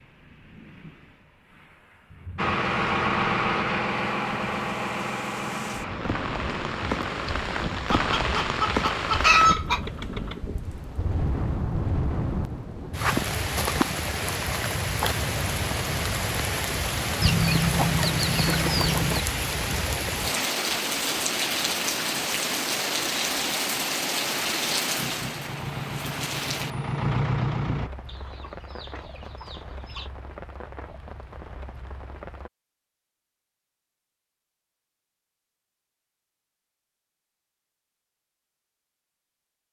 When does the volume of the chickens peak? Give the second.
9 s.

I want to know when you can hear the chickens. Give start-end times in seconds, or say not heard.
7.9-9.8, 17.2-19.2, 28.1-30.1.